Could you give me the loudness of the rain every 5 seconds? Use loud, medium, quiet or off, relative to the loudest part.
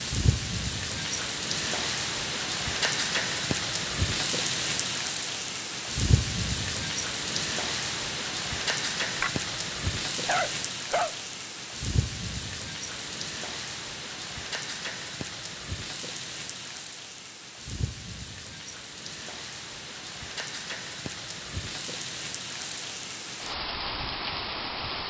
loud, loud, medium, medium, medium.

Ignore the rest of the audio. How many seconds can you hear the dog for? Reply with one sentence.
The dog can be heard for 2 seconds in total.